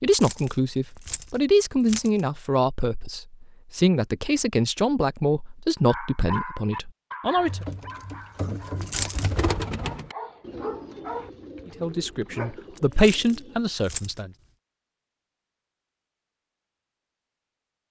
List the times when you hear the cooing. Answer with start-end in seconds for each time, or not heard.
7.3-13.8.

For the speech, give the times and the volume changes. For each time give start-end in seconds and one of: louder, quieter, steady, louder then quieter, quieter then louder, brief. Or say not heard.
0.0-7.7 quieter
11.8-14.3 brief.